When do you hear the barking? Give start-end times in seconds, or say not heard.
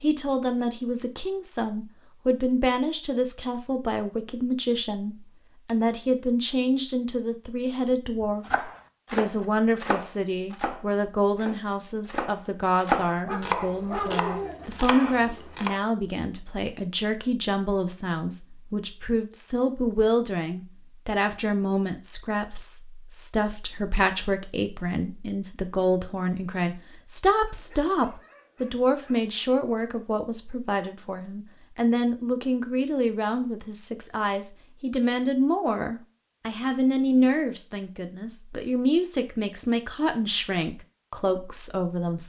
13.2-14.7, 27.4-29.4.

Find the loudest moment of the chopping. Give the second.
13 s.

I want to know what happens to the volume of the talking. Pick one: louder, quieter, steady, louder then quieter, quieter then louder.
steady.